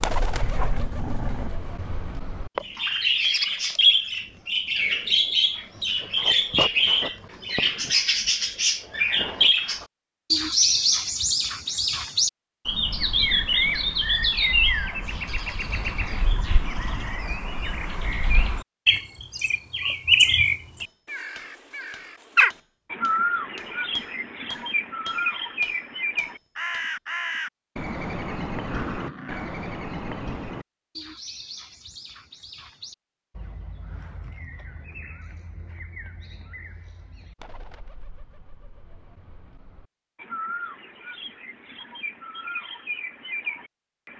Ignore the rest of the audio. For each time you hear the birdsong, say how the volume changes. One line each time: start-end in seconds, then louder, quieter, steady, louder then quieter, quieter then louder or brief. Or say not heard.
0.0-44.1 quieter.